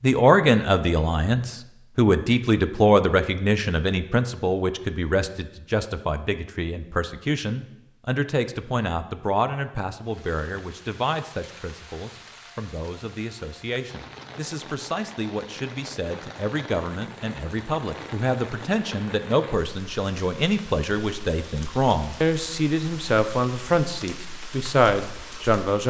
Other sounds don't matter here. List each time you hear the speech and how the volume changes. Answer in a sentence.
The speech can be heard from 0.0 to 25.8 s, getting quieter then louder.